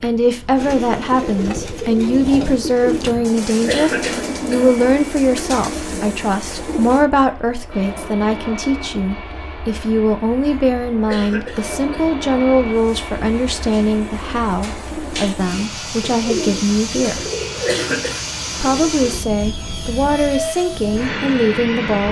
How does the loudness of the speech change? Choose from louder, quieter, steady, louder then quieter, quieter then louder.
steady.